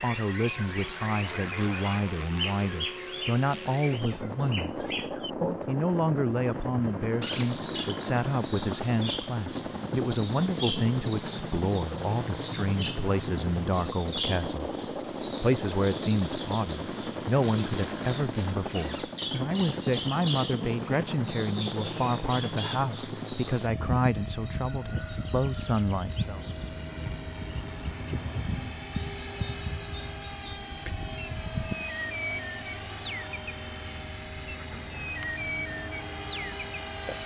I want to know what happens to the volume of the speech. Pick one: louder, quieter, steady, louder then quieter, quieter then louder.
steady.